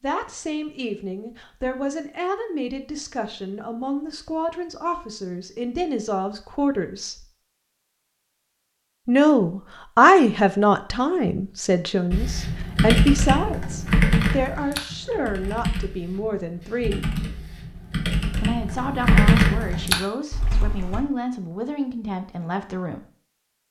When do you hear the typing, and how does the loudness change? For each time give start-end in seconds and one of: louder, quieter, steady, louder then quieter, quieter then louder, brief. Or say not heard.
12.1-21.1 quieter then louder.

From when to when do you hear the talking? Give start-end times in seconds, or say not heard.
0.0-7.2, 9.1-17.1, 18.4-23.1.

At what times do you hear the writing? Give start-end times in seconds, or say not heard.
not heard.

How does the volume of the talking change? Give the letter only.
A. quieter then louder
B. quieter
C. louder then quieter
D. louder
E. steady
C.